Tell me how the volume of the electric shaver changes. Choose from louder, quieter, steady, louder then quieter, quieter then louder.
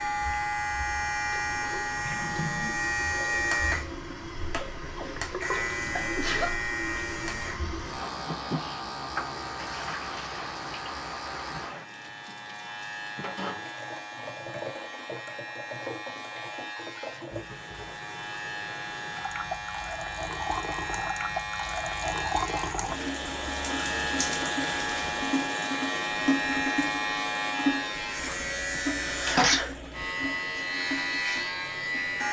quieter then louder.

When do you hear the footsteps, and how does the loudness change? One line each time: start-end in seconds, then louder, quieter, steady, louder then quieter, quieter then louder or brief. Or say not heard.
not heard.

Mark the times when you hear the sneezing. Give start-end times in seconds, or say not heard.
5.0-6.5, 28.8-29.7.